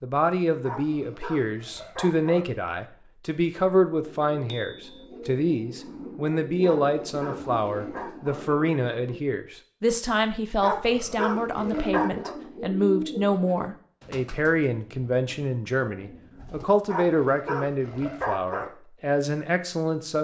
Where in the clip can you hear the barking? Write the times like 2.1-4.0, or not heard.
0.6-2.5, 6.6-8.4, 10.6-12.3, 16.9-18.7.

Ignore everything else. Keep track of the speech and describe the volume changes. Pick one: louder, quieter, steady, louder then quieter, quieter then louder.
steady.